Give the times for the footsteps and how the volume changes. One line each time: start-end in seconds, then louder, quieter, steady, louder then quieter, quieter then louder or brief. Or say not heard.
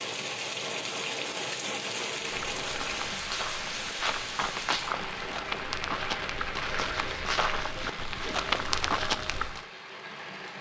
2.4-9.7 louder.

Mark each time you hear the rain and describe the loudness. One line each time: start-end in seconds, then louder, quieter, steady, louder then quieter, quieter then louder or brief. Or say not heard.
0.0-10.5 quieter.